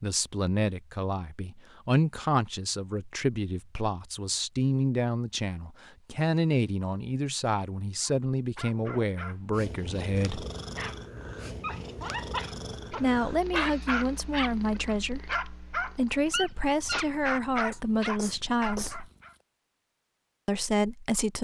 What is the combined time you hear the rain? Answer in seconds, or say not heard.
not heard.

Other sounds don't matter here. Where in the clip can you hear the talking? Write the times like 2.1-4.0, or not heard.
0.0-10.4, 12.9-19.1, 20.4-21.3.